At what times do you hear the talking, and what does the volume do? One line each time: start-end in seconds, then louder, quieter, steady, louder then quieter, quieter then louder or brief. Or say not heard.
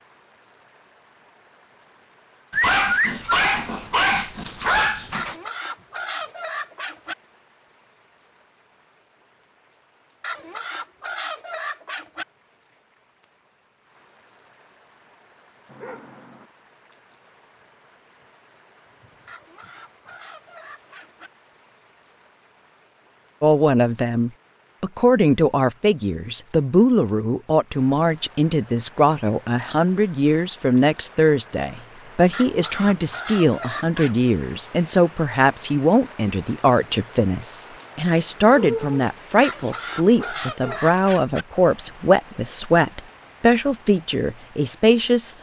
23.4-45.3 steady.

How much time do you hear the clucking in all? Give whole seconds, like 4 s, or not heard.
10 s.